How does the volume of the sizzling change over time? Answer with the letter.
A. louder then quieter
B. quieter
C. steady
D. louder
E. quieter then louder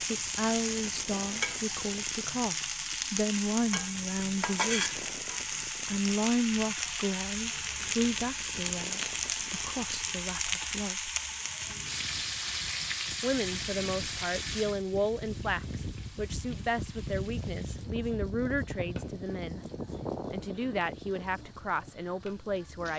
B.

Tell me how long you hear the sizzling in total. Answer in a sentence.
You can hear the sizzling for 23 seconds altogether.